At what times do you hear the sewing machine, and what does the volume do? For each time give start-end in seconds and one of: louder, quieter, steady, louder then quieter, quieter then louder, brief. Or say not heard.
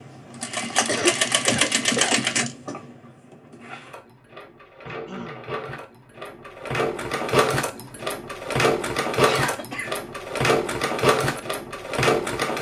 0.0-12.5 quieter then louder.